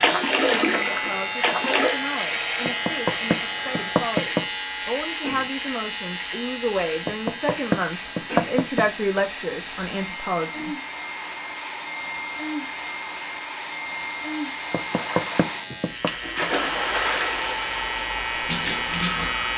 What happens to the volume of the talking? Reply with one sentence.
The loudness of the talking goes up.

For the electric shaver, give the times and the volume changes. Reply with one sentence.
The electric shaver can be heard from 0.0 to 19.5 s, getting quieter then louder.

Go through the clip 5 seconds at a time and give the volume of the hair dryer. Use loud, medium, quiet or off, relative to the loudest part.
medium, medium, loud, loud.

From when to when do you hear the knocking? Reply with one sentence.
You can hear the knocking from 2.6 to 4.5 s, from 7.0 to 8.9 s and from 14.7 to 16.1 s.